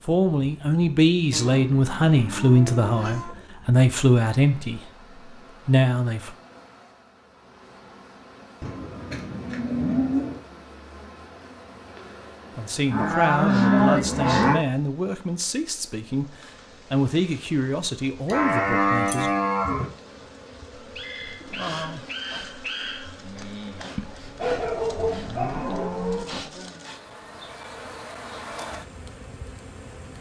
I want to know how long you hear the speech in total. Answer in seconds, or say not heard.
12 s.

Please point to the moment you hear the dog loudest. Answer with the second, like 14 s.
25 s.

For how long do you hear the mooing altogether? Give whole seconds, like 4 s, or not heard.
9 s.